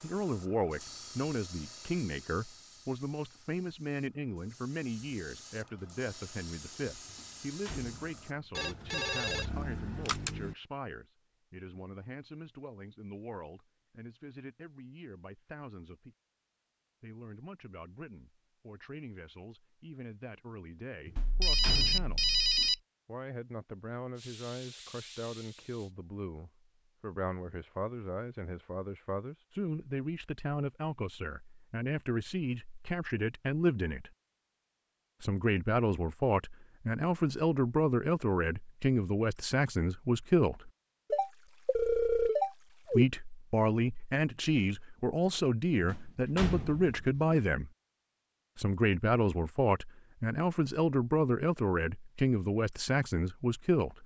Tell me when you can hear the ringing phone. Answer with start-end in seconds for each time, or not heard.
8.6-10.6, 21.2-22.8, 41.1-43.0.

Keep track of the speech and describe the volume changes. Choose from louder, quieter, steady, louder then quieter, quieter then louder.
quieter then louder.